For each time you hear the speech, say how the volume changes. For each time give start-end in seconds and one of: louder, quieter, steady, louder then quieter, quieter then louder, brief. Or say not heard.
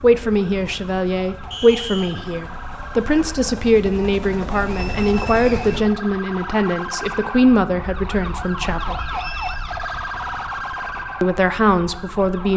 0.0-9.0 steady
11.2-12.5 brief.